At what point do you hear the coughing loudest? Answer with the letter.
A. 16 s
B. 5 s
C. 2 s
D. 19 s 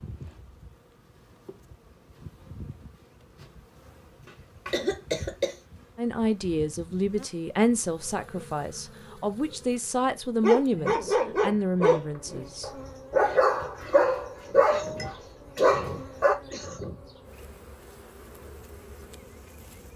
B.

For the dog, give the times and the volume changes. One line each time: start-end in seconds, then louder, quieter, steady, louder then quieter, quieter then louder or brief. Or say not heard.
10.4-16.4 steady.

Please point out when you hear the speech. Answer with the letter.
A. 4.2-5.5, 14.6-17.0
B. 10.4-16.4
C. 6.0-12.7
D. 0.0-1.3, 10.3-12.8
C.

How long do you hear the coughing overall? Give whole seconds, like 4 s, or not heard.
4 s.